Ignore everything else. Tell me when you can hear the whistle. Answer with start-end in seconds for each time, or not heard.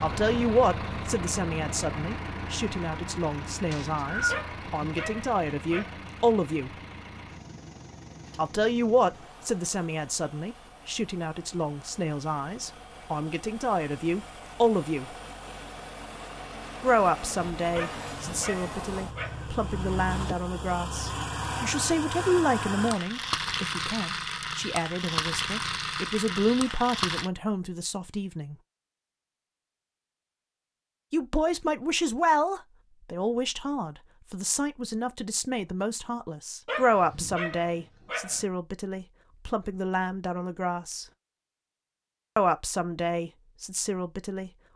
3.7-4.4.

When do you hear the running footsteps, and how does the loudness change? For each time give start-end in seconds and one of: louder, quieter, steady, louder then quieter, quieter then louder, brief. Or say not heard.
not heard.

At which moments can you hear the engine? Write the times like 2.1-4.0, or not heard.
0.0-27.3.